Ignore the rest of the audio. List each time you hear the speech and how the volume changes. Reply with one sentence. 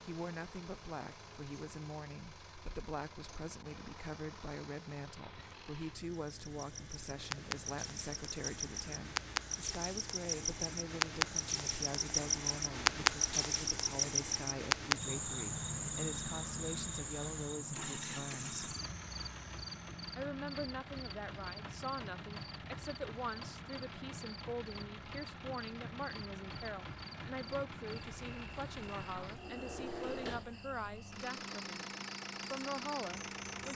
The speech can be heard from 0.1 to 18.6 s, at a steady volume; from 20.1 to 31.9 s, at a steady volume; and briefly from 32.5 to 33.6 s.